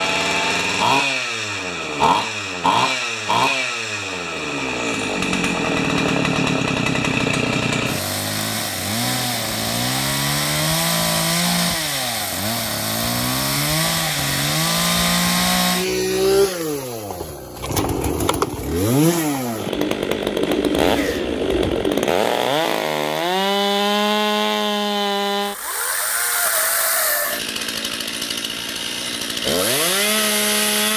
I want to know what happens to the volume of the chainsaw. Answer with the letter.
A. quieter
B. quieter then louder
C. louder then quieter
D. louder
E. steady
E.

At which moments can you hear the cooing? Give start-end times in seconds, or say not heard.
19.7-22.1.